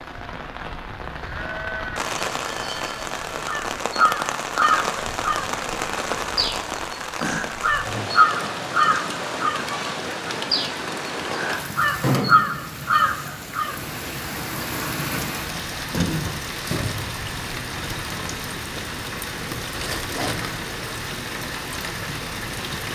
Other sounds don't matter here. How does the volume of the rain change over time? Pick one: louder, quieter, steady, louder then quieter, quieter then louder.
steady.